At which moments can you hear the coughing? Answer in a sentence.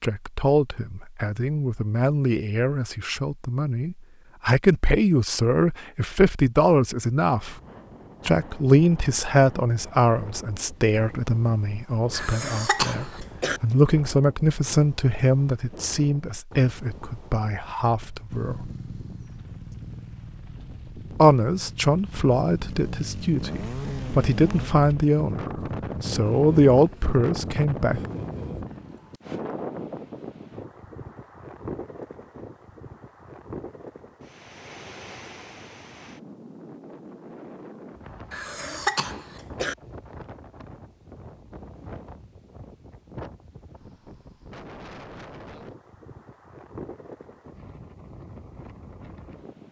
The coughing can be heard from 12.1 to 13.6 s and from 38.3 to 39.8 s.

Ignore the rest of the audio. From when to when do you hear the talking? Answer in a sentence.
You can hear the talking from 0.0 to 7.5 s, from 8.2 to 18.7 s and from 21.1 to 28.1 s.